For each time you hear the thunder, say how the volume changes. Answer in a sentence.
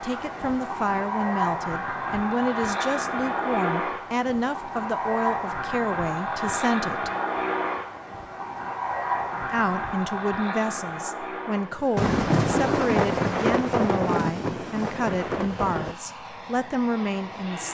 You can hear the thunder from 11.9 to 15.9 s, getting quieter.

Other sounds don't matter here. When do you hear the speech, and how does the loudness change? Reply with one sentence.
You can hear the speech from 0.0 to 7.1 s, at a steady volume; and from 9.4 to 17.6 s, at a steady volume.